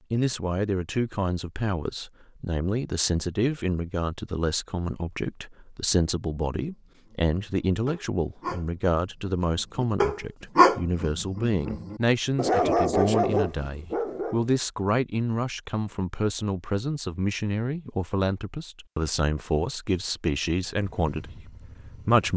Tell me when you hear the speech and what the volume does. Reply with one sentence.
The speech can be heard from 0.1 to 22.3 s, at a steady volume.